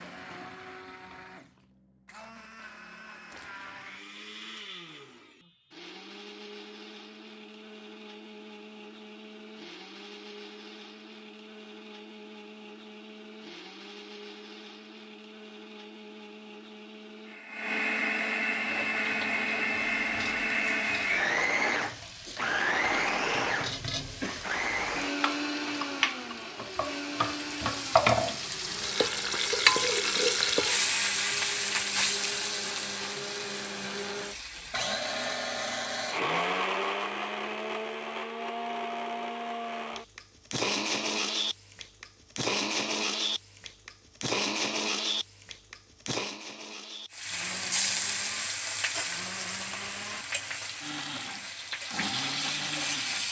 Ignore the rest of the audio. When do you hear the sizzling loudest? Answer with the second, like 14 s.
30 s.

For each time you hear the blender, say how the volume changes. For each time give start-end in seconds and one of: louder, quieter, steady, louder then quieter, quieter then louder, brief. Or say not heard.
0.0-53.2 louder.